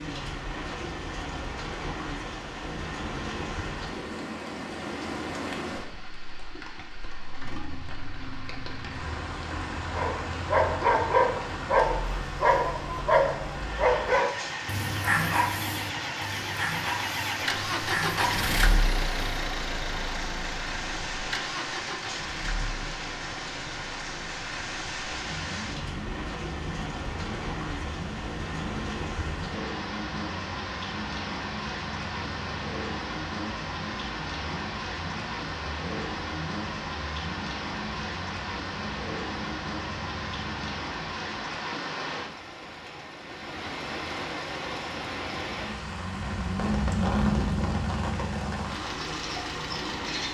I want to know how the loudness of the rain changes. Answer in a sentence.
The volume of the rain stays about the same.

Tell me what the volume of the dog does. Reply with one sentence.
The loudness of the dog goes down.